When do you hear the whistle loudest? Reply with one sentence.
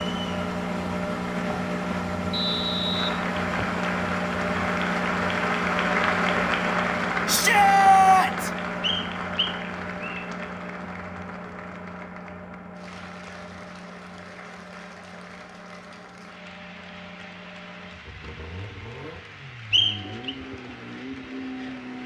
The volume of the whistle peaks at 20 seconds.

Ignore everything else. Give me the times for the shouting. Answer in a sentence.
The shouting can be heard from 7.2 to 8.5 s.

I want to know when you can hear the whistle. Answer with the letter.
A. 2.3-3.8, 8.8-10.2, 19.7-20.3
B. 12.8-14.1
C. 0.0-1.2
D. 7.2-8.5
A.